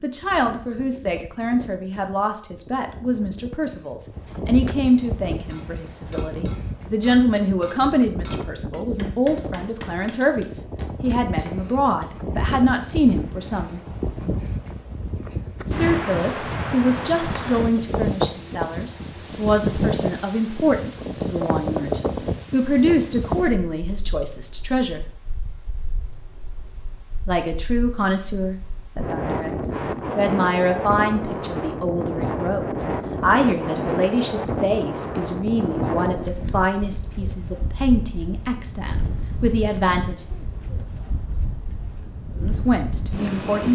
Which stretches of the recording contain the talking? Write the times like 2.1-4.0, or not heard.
0.0-13.8, 15.7-25.0, 27.2-40.2, 42.4-43.7.